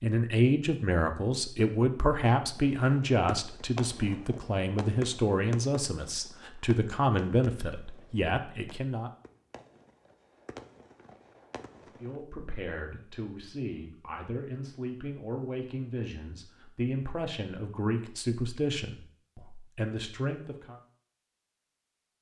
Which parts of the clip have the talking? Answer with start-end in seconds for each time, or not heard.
0.0-9.1, 11.8-20.8.